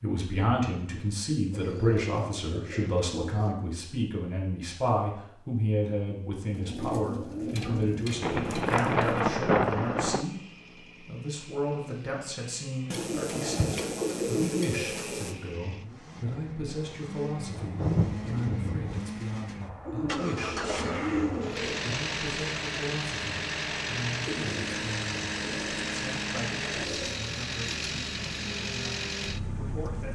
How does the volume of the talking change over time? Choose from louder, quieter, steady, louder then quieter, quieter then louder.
quieter.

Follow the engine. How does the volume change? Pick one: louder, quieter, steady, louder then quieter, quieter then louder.
louder.